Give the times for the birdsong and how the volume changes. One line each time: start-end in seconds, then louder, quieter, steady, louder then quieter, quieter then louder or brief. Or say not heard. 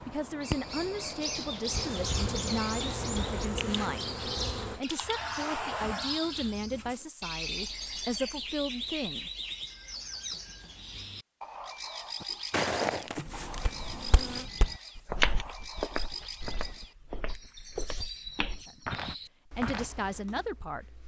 0.0-21.0 quieter.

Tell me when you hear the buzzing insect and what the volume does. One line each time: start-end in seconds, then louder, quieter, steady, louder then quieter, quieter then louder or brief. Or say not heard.
1.6-7.1 quieter
12.9-14.5 brief.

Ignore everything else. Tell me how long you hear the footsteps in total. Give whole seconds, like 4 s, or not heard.
8 s.